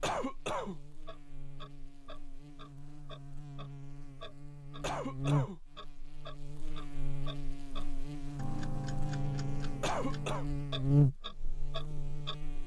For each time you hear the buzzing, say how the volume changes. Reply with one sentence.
You can hear the buzzing from 0.1 to 12.6 s, getting louder.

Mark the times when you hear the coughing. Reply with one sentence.
You can hear the coughing from 0.0 to 0.8 s, from 4.8 to 5.6 s and from 9.8 to 10.4 s.